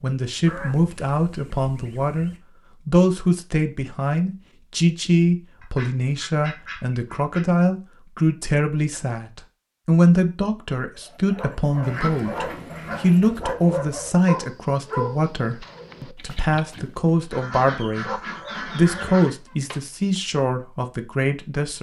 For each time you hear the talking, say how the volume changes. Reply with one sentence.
You can hear the talking from 0.0 to 21.7 s, at a steady volume.